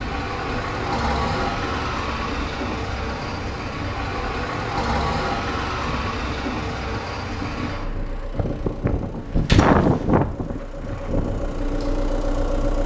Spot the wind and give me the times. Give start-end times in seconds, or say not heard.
0.0-12.8.